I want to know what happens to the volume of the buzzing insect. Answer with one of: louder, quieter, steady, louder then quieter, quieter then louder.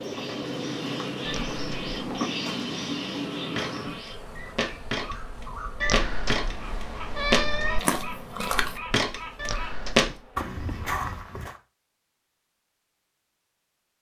quieter.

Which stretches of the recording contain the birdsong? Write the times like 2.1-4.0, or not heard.
0.0-9.8.